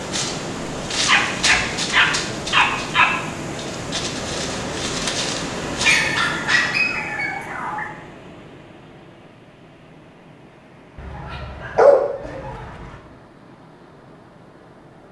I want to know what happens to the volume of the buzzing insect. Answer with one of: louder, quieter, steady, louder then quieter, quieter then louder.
quieter then louder.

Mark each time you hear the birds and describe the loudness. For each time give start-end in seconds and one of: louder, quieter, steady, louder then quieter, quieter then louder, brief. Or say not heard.
not heard.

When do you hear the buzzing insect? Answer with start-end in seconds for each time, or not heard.
0.0-6.1.